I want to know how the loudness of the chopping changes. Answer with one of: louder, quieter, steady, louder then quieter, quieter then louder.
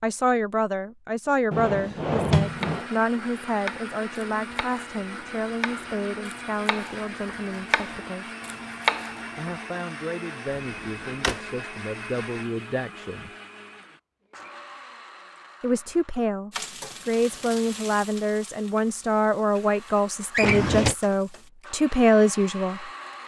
quieter then louder.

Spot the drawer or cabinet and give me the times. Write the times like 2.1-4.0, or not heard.
1.5-2.9, 10.6-11.4, 20.3-20.9.